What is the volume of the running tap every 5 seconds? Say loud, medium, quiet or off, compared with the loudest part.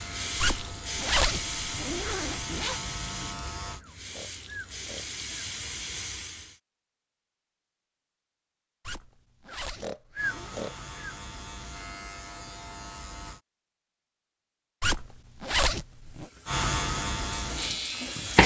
medium, medium, off, loud.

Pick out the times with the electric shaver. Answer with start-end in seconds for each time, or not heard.
0.0-3.9, 10.2-13.4, 16.4-18.4.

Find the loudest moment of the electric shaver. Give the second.
17 s.